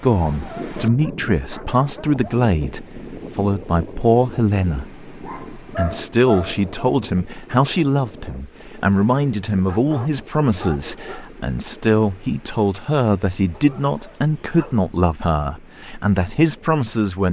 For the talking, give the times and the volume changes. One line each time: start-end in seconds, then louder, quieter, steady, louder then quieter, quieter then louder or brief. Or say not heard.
0.0-17.2 steady.